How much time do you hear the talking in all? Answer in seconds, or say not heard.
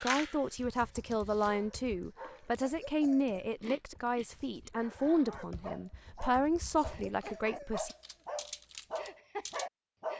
8 s.